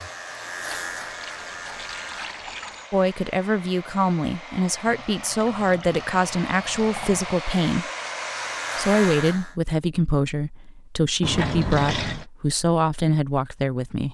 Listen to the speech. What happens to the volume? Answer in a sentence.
The volume of the speech stays about the same.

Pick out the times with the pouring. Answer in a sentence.
The pouring can be heard from 0.7 to 2.9 s, from 4.8 to 7.4 s and from 11.2 to 12.2 s.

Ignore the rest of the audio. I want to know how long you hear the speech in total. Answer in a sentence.
The speech can be heard for 10 seconds in total.